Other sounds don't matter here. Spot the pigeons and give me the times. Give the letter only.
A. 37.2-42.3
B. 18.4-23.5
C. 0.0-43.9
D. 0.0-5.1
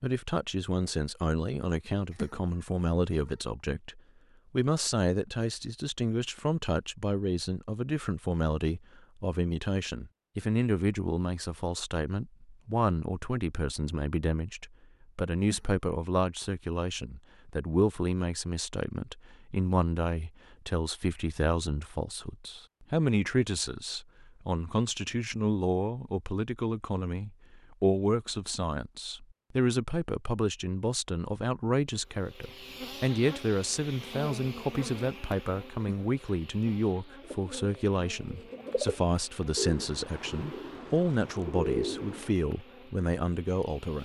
A.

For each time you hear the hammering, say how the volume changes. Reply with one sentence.
The hammering can't be heard in this clip.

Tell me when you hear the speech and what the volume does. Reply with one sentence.
You can hear the speech from 0.0 to 43.9 s, at a steady volume.